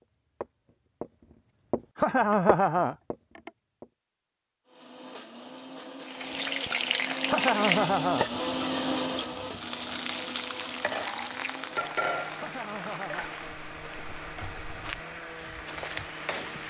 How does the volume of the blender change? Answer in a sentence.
The volume of the blender goes up, then down.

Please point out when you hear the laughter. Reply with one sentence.
The laughter can be heard from 1.9 to 3.5 s, from 7.2 to 8.2 s and from 12.3 to 13.3 s.